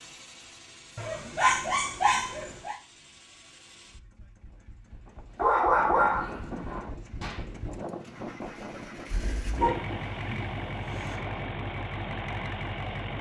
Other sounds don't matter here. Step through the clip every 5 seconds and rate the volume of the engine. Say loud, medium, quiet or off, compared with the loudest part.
quiet, medium, loud.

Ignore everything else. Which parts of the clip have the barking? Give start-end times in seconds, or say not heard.
0.9-2.8, 5.3-6.9, 9.6-11.2.